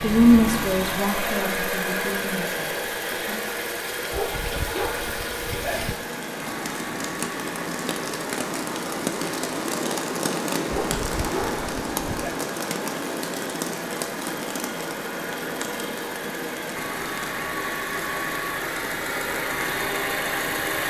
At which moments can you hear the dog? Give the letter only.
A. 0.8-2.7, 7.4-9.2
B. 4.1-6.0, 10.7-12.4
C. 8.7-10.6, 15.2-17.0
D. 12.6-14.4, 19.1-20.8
B.